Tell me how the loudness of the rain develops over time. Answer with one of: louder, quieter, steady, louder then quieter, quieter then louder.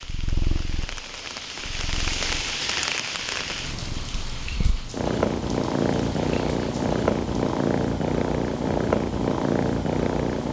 louder then quieter.